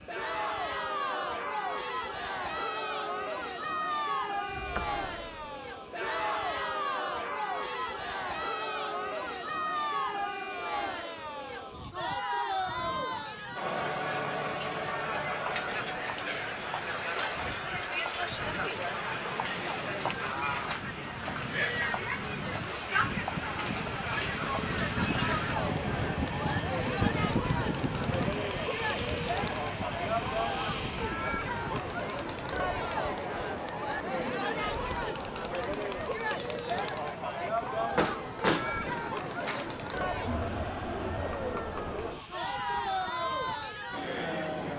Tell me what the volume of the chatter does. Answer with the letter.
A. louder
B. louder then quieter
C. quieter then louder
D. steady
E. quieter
D.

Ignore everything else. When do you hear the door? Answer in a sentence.
The door can be heard from 4.5 to 5.5 s and from 38.0 to 39.8 s.